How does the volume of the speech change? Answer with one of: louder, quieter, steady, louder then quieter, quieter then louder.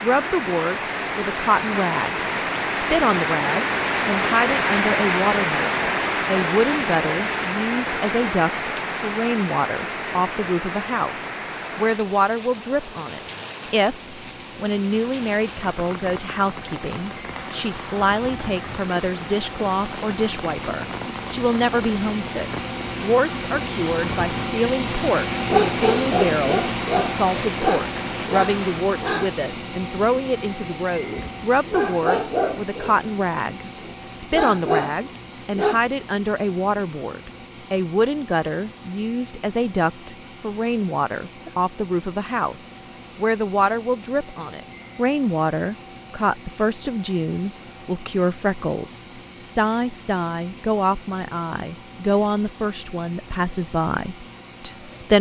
steady.